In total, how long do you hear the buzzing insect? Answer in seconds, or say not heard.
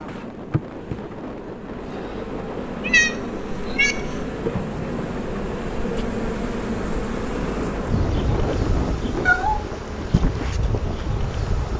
12 s.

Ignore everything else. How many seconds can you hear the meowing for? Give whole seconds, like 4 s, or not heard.
2 s.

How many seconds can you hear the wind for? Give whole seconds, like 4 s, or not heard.
12 s.